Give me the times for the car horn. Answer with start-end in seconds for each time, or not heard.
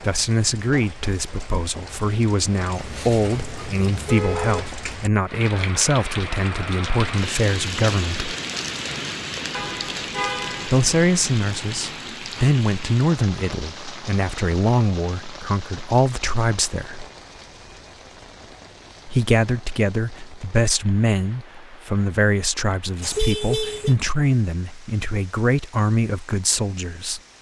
2.7-4.7, 9.5-10.8, 23.0-23.9.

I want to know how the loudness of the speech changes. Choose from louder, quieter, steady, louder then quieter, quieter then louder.
steady.